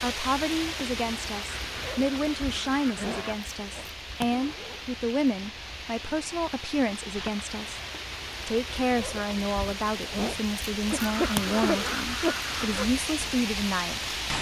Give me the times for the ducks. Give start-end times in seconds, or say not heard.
1.4-3.4, 10.9-12.9.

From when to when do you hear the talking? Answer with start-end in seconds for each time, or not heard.
0.0-7.8, 8.4-14.1.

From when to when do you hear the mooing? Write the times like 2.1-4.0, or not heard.
not heard.